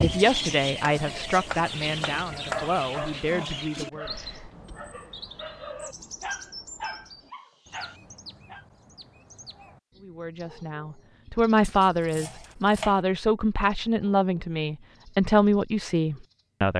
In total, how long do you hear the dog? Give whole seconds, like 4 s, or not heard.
6 s.